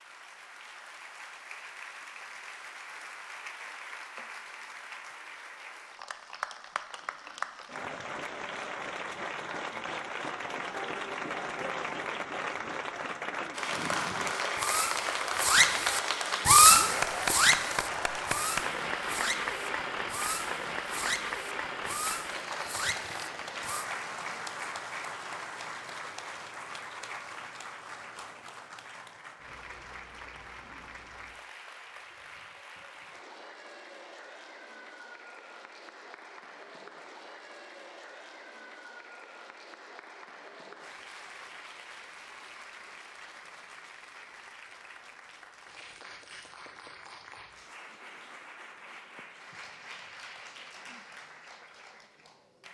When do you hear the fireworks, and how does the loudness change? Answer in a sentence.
You can hear the fireworks from 13.7 to 23.9 s, getting louder then quieter.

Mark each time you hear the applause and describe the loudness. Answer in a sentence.
The applause can be heard from 0.0 to 52.6 s, getting louder then quieter.